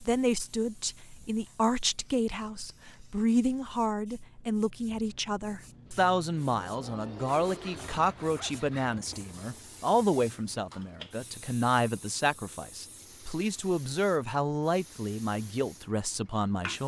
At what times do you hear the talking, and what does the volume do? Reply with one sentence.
The talking can be heard from 0.0 to 16.8 s, at a steady volume.